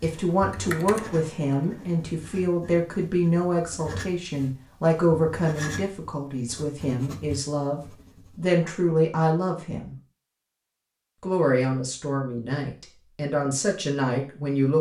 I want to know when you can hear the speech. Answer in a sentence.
You can hear the speech from 0.0 to 9.9 s and from 11.2 to 14.7 s.